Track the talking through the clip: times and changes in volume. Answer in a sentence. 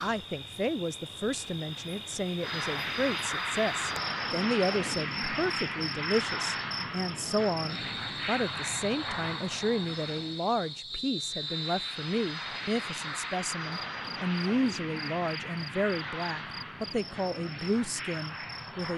The talking can be heard from 0.0 to 18.9 s, at a steady volume.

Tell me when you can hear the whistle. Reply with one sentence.
You can hear the whistle from 10.9 to 11.9 s.